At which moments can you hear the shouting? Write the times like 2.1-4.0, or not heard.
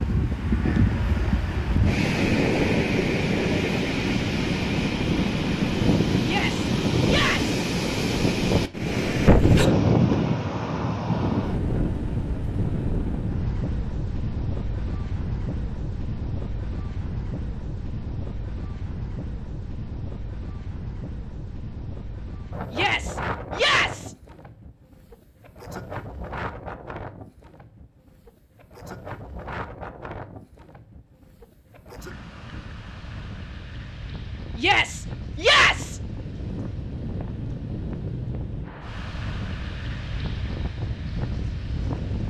6.2-7.5, 22.7-24.1, 34.5-36.0.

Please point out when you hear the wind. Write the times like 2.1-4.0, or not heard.
0.0-42.2.